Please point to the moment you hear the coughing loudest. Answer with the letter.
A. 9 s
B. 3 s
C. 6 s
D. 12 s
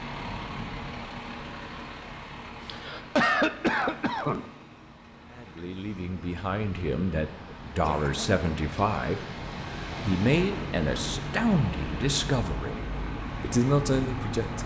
B.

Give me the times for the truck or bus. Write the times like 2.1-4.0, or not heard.
0.0-14.6.